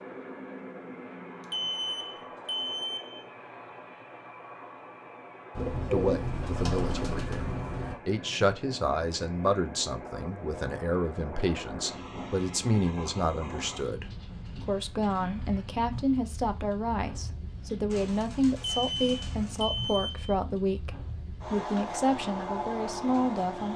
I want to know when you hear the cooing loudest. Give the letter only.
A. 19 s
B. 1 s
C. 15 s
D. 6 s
D.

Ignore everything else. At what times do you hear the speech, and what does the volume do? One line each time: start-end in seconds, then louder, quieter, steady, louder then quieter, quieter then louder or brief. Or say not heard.
5.9-23.7 steady.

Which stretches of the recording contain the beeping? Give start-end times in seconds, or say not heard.
1.4-3.2, 18.7-20.4.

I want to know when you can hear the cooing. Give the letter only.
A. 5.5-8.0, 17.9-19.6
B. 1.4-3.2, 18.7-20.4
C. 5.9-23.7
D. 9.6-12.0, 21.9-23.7
A.